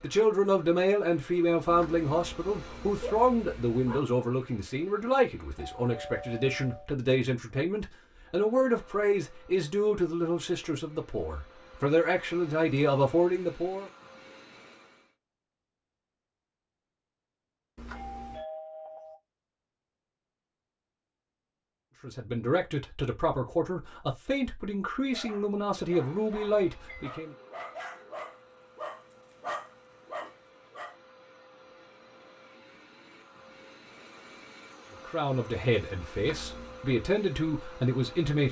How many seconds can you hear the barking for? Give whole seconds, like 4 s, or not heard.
6 s.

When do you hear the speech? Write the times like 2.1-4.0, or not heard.
0.0-13.9, 22.0-27.4, 35.0-38.4.